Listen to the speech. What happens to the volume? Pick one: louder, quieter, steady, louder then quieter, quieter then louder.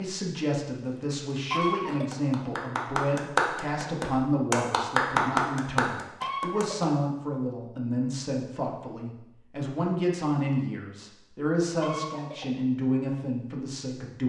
steady.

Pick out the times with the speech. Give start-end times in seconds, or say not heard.
0.0-14.2.